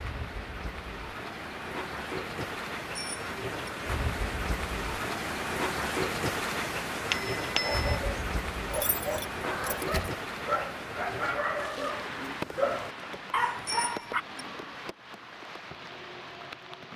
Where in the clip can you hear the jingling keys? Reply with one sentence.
The jingling keys can be heard from 8.7 to 10.1 s.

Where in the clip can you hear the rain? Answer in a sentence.
You can hear the rain from 0.0 to 16.9 s.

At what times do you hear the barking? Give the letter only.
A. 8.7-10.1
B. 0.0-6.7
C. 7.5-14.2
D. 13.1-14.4
C.